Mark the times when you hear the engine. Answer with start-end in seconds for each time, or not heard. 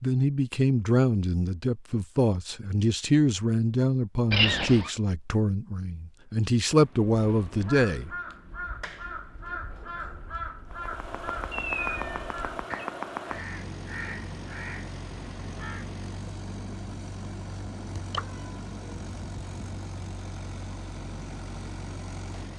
10.7-22.5.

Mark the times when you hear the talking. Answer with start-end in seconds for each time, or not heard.
0.0-8.1.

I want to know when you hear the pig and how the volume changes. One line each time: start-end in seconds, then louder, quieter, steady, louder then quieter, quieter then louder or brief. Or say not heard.
not heard.